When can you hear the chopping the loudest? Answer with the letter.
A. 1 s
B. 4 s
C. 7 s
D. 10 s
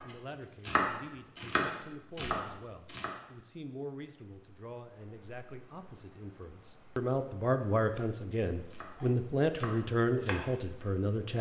A.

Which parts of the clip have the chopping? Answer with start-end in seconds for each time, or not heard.
0.0-3.1, 8.7-11.3.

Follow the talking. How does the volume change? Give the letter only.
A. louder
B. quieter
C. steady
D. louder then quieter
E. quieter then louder
A.